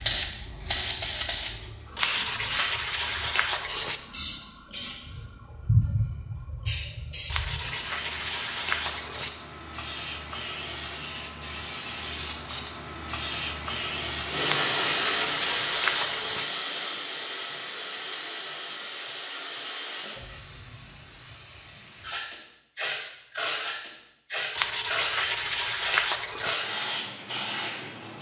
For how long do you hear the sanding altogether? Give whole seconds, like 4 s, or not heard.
8 s.